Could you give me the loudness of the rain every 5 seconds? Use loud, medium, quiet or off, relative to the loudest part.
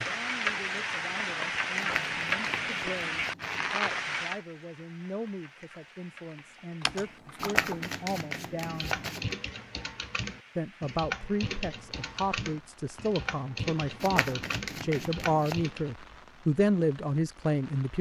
loud, quiet, quiet, quiet.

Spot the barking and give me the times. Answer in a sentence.
You can't hear the barking here.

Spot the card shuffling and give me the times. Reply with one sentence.
The card shuffling can be heard from 1.8 to 3.8 s, from 7.4 to 9.3 s and from 14.0 to 15.7 s.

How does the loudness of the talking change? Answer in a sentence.
The volume of the talking goes up.